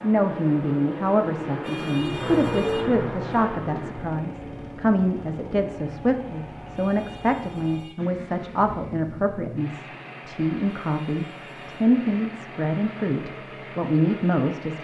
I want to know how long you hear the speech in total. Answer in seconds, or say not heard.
15 s.